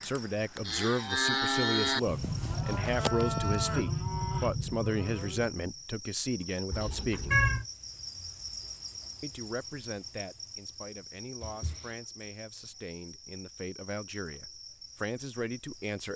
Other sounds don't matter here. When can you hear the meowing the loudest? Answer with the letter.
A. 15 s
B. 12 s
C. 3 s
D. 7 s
D.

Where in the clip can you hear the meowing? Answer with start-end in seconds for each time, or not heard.
1.9-3.5, 6.7-7.7, 11.4-11.9.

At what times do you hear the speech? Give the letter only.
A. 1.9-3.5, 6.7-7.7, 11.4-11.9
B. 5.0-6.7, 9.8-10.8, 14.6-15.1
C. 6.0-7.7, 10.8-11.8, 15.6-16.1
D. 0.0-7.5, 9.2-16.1
D.